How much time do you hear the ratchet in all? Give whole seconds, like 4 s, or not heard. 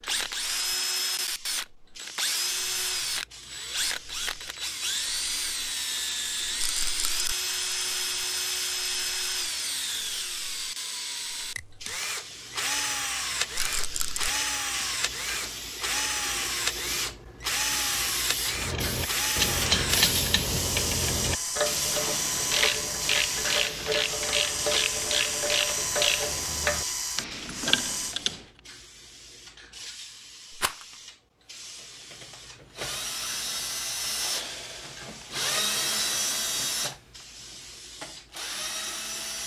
10 s.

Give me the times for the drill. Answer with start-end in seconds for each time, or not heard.
0.0-28.1, 31.5-39.4.